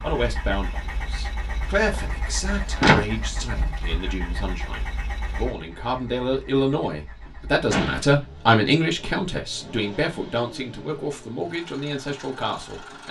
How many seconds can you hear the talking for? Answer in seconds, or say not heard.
13 s.